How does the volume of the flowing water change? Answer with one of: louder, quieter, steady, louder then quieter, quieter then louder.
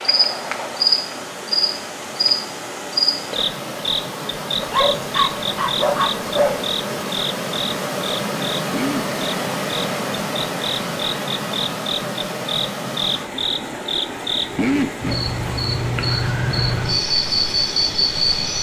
louder then quieter.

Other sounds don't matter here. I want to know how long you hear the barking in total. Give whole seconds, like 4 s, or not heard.
2 s.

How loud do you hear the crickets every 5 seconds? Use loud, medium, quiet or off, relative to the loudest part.
loud, medium, loud, loud.